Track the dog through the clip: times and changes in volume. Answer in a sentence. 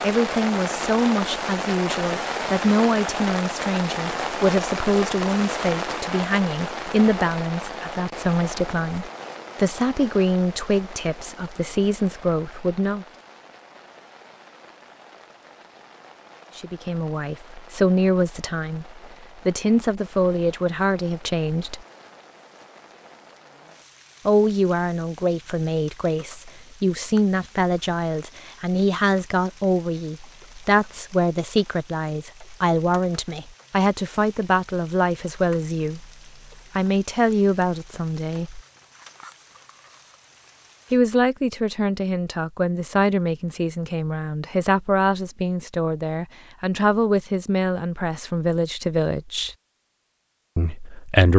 You can't hear the dog here.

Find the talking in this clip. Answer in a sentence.
The talking can be heard from 0.0 to 13.1 s, from 16.6 to 21.8 s, from 24.2 to 36.1 s, from 36.8 to 38.6 s, from 40.9 to 49.5 s and from 50.5 to 51.3 s.